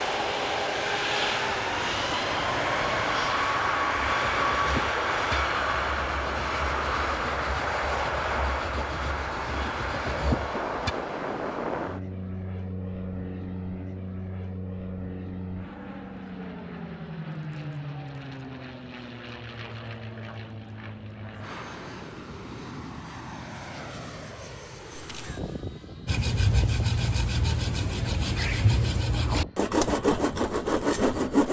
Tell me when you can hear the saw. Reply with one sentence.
You can hear the saw from 4.2 to 10.9 s and from 26.1 to 31.4 s.